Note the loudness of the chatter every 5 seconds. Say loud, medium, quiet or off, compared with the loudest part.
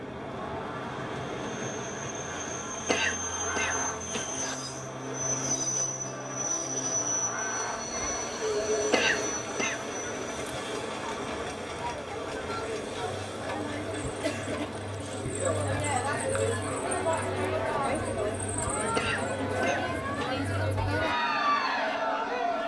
medium, medium, medium, loud, loud.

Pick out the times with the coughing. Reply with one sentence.
You can hear the coughing from 2.9 to 4.5 s, from 8.9 to 9.8 s and from 18.9 to 20.3 s.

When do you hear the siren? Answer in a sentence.
The siren can't be heard in this clip.